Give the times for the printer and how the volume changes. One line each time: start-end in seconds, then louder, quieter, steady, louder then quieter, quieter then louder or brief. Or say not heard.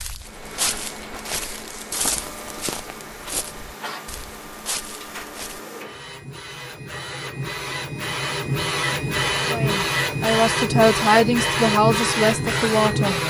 0.0-13.2 louder.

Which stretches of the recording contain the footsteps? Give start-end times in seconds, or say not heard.
0.0-5.6.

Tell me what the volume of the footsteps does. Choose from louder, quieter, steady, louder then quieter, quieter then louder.
quieter.